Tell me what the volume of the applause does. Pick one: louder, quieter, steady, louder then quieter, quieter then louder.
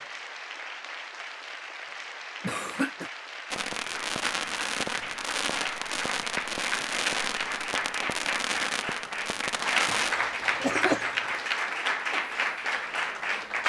louder.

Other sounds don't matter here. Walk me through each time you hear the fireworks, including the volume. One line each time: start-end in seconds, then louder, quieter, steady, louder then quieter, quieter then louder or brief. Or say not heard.
3.5-10.2 steady.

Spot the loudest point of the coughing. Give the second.
11 s.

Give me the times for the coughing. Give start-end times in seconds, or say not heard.
2.4-3.1, 9.8-11.1.